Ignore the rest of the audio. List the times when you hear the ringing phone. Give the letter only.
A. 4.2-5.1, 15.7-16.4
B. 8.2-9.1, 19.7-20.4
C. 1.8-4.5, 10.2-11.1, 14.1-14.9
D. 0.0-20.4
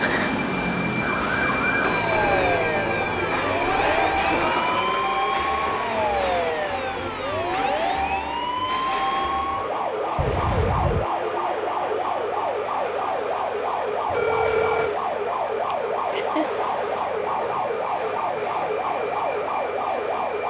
C.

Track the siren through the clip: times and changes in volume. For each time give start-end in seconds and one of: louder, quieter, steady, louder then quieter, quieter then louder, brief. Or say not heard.
0.0-20.4 steady.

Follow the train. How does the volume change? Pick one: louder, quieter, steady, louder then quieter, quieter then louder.
quieter.